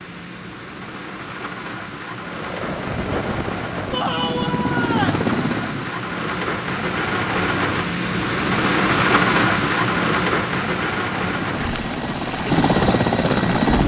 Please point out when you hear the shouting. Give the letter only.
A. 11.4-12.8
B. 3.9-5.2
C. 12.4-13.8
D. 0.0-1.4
B.